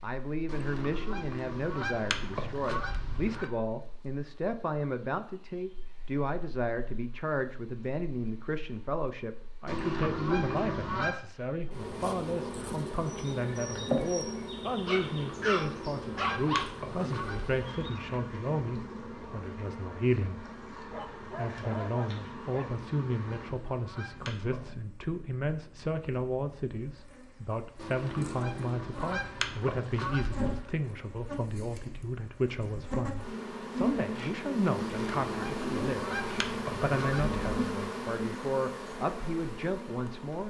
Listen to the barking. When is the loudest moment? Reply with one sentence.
The loudest moment of the barking is at 16 seconds.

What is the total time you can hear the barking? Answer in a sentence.
The barking can be heard for 4 seconds in total.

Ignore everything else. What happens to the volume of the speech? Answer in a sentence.
The loudness of the speech stays about the same.